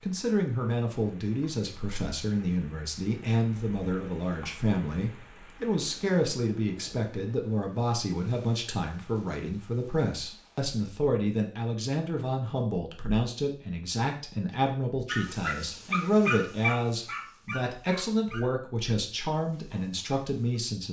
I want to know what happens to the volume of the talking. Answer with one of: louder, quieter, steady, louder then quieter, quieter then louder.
steady.